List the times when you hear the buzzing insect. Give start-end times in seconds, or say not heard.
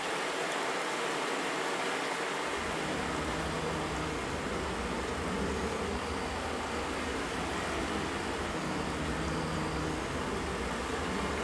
2.5-11.3.